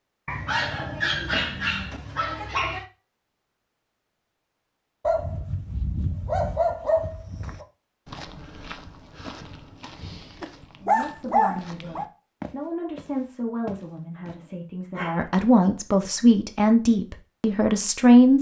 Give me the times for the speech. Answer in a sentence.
You can hear the speech from 10.8 to 18.3 s.